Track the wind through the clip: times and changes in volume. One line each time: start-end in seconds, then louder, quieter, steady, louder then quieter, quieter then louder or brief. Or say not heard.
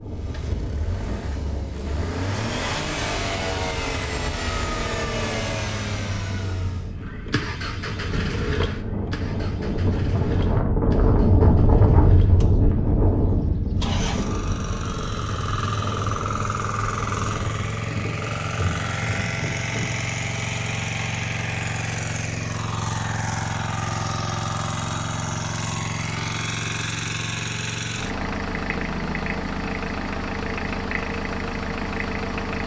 0.0-20.0 louder then quieter.